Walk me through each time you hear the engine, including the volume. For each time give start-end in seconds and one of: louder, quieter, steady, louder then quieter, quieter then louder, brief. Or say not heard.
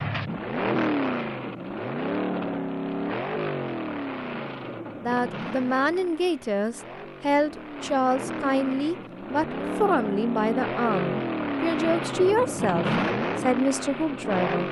0.0-14.6 quieter then louder.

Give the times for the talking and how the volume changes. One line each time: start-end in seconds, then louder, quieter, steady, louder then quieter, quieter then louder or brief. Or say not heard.
5.0-14.6 steady.